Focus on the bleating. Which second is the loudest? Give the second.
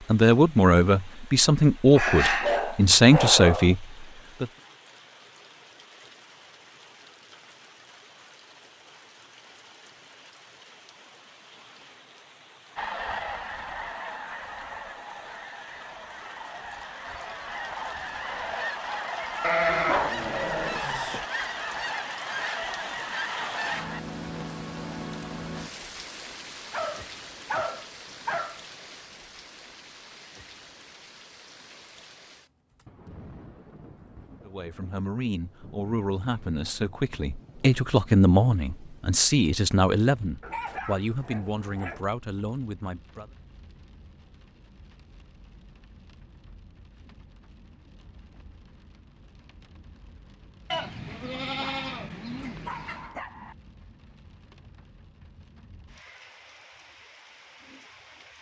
20 s.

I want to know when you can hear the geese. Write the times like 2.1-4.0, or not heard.
12.8-24.0.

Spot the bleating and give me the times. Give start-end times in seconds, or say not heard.
19.4-21.2, 50.7-53.1.